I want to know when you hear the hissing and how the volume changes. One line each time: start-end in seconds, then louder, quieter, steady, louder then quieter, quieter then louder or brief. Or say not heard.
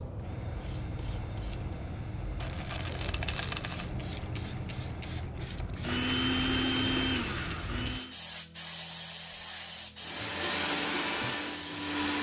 0.0-12.1 steady.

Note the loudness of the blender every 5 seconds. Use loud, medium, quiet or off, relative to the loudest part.
quiet, loud, loud.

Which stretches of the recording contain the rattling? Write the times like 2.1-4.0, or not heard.
2.4-3.9.